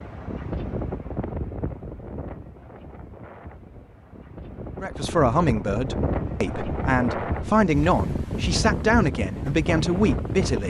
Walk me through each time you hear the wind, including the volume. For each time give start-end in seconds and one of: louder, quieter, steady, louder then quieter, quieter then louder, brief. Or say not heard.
0.0-10.6 quieter then louder.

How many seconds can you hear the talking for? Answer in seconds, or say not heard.
6 s.